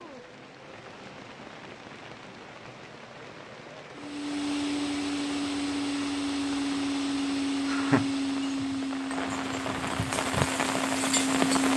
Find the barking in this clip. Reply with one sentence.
You can't hear the barking here.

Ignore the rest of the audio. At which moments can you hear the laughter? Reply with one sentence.
The laughter can be heard from 7.7 to 8.1 s.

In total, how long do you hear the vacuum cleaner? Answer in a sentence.
The vacuum cleaner can be heard for 8 seconds in total.